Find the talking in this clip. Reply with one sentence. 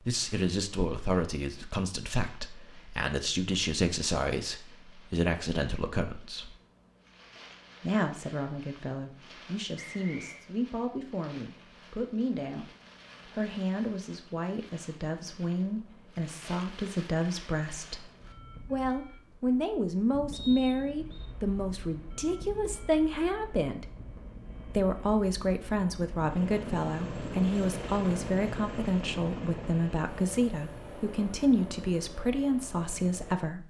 You can hear the talking from 0.0 to 6.5 s, from 7.8 to 18.1 s, from 18.7 to 23.9 s and from 24.6 to 33.6 s.